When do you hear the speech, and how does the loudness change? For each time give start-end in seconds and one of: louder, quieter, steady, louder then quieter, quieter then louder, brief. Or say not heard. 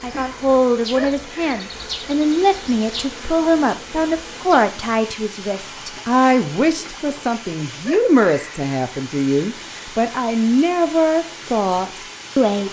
0.0-12.6 steady.